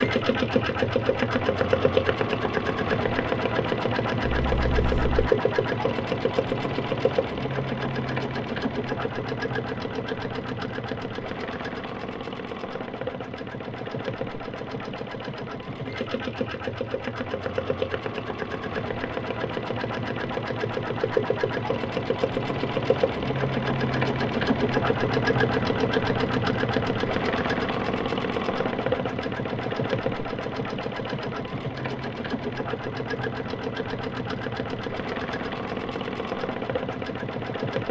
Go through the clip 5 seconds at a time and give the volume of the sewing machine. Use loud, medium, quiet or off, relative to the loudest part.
loud, loud, medium, medium, loud, loud, medium, medium.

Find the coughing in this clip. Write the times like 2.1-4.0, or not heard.
4.2-5.3.